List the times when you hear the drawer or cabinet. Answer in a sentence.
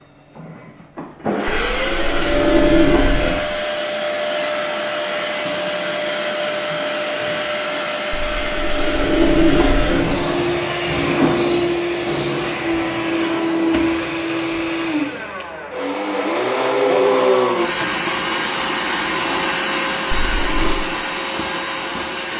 You can hear the drawer or cabinet from 1.5 to 3.4 s, from 8.1 to 10.2 s and from 20.1 to 20.8 s.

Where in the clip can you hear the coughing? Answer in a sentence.
The coughing can't be heard in this clip.